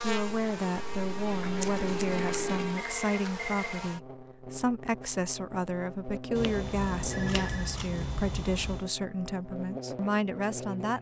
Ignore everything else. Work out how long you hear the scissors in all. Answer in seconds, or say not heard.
4 s.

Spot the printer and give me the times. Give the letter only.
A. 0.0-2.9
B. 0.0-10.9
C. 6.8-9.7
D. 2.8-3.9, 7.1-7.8
A.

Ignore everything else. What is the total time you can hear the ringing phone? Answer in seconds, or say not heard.
2 s.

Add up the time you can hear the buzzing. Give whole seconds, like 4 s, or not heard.
11 s.